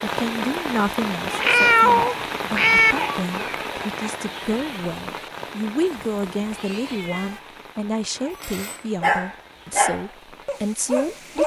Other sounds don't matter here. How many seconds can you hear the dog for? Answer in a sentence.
You can hear the dog for 3 seconds altogether.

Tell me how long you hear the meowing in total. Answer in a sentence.
The meowing can be heard for 3 seconds in total.